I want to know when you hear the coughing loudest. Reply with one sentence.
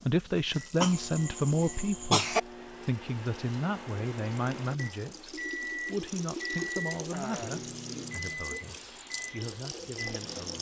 The loudest moment of the coughing is at 2 seconds.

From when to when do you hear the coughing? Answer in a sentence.
You can hear the coughing from 0.8 to 2.4 s.